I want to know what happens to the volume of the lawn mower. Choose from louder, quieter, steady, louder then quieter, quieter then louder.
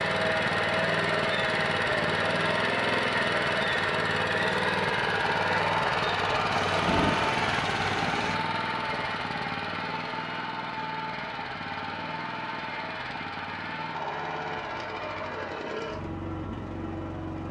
quieter.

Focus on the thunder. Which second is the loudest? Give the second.
7 s.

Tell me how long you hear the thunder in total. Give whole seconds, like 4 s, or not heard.
2 s.